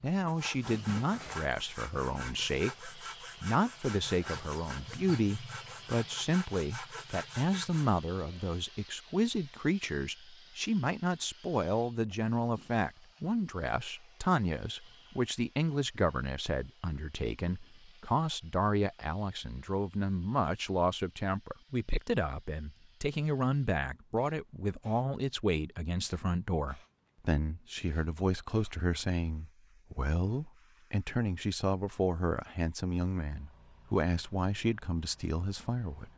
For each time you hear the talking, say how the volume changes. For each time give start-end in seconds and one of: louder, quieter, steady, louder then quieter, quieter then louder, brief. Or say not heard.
0.0-36.1 steady.